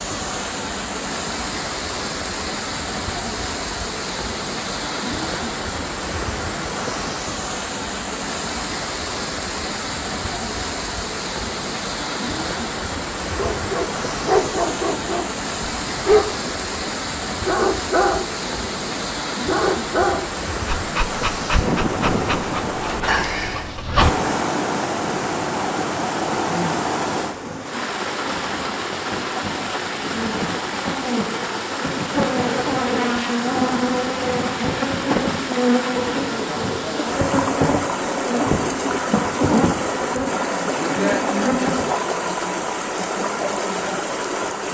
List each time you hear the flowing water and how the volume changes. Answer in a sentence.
You can hear the flowing water from 0.0 to 44.6 s, at a steady volume.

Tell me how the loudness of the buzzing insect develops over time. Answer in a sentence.
The loudness of the buzzing insect goes up.